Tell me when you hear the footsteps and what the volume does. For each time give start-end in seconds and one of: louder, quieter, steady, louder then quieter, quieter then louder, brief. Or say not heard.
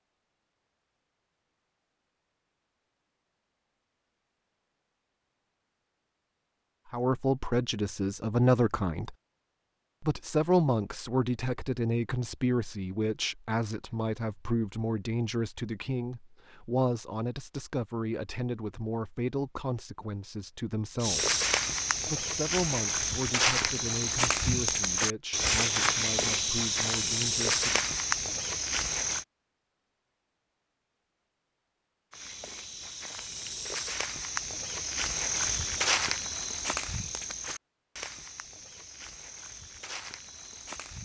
21.0-29.2 steady
32.1-40.9 louder then quieter.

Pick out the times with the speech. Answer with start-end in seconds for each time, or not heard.
6.9-9.2, 10.0-21.4, 22.1-27.9.